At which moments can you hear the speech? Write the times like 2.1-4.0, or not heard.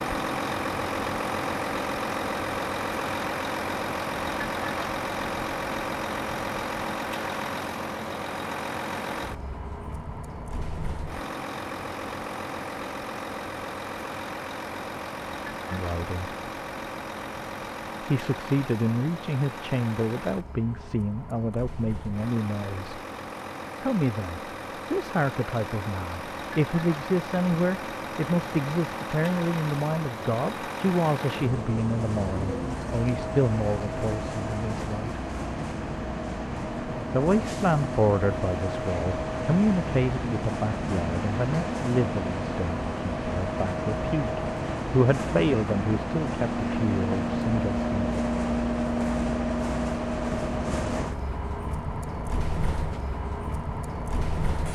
15.7-16.3, 18.0-23.0, 23.8-35.2, 37.1-48.2.